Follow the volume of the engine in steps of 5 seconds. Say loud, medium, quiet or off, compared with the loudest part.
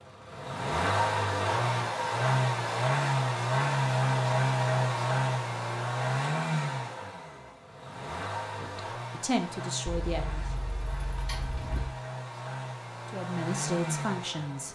loud, medium, medium.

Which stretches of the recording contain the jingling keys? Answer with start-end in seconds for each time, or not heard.
9.8-11.8.